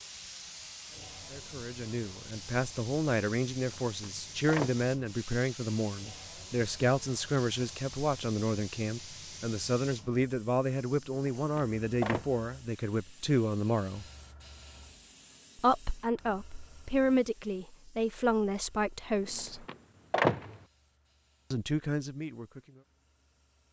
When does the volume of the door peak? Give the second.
20 s.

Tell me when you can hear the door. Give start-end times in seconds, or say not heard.
3.6-4.9, 11.3-12.3, 19.2-20.6.